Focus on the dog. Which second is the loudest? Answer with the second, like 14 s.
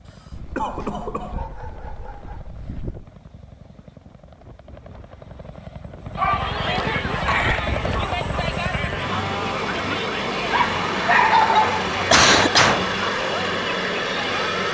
11 s.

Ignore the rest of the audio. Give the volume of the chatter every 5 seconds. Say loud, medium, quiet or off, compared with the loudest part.
off, loud, loud.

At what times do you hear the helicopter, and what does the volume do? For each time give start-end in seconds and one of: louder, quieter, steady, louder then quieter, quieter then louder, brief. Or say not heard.
0.0-14.6 louder.